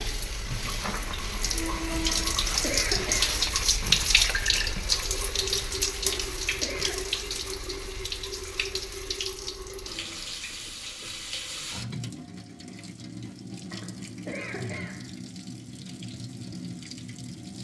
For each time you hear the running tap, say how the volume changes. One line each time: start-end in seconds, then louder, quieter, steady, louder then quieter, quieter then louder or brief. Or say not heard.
0.0-17.5 quieter.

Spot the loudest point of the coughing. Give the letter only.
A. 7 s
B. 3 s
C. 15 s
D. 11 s
B.